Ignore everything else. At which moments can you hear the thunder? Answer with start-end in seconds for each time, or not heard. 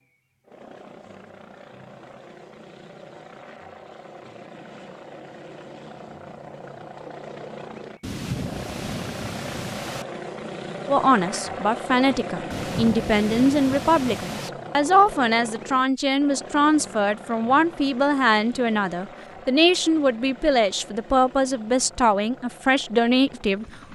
8.0-10.1, 12.5-14.5.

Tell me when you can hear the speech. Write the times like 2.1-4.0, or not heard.
10.8-23.9.